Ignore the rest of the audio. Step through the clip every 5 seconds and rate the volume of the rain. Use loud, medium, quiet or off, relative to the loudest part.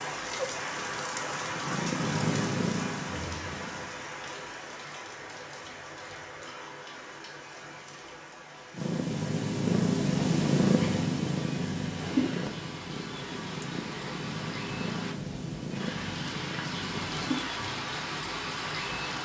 loud, medium, medium, loud.